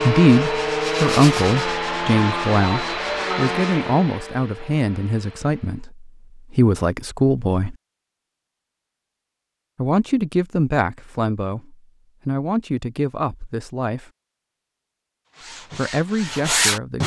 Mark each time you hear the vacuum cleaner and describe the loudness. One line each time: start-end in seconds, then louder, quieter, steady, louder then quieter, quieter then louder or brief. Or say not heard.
0.0-5.9 quieter.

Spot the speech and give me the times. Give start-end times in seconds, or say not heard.
0.0-7.8, 9.8-14.1, 15.8-17.0.